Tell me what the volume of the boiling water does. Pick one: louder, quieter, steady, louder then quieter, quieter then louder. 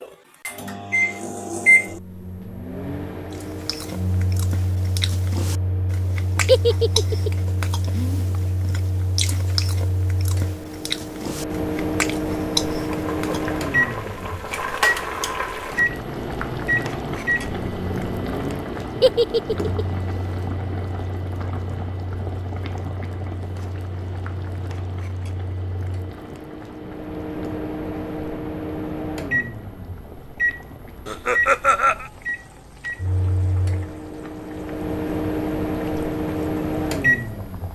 quieter.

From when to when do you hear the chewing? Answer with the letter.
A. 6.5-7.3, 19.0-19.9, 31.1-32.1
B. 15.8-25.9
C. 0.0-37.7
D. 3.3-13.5
D.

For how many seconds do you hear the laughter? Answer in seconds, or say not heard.
3 s.